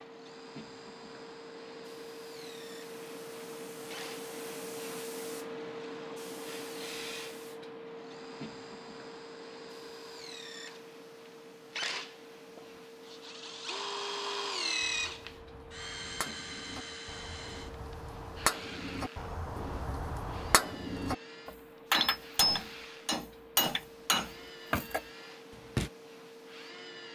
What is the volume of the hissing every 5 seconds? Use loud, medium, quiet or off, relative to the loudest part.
loud, loud, medium, medium, medium, medium.